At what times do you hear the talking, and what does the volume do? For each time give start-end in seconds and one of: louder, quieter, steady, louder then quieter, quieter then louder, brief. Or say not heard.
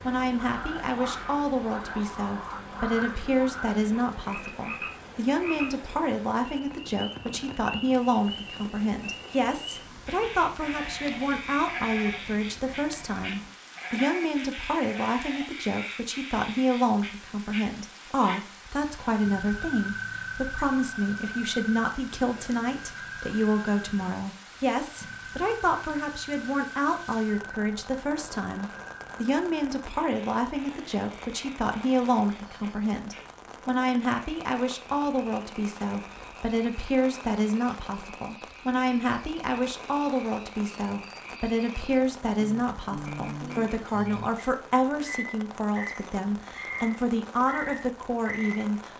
0.0-48.9 steady.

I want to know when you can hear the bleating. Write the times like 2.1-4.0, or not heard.
10.6-15.5.